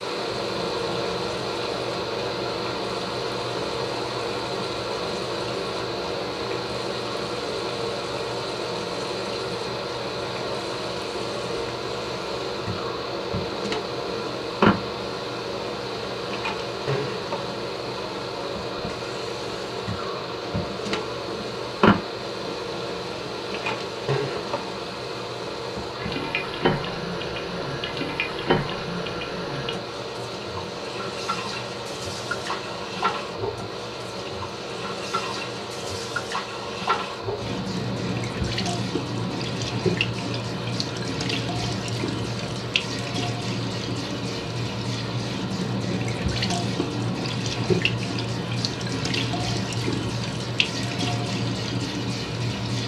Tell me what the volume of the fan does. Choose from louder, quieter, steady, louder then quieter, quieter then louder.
quieter.